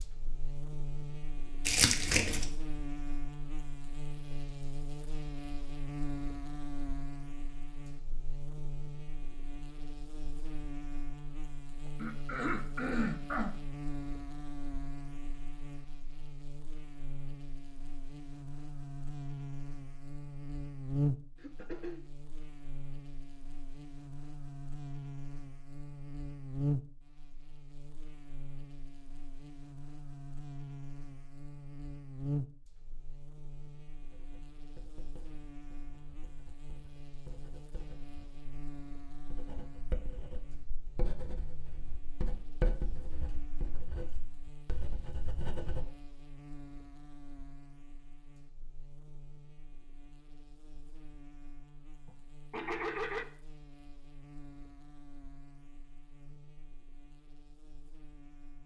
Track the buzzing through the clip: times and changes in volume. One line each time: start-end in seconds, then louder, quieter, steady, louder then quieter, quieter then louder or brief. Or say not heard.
0.0-58.6 quieter.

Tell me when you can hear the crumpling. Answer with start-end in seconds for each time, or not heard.
1.6-2.5.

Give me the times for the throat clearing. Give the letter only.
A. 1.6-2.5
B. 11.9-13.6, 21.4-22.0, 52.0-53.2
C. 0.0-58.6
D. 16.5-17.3
B.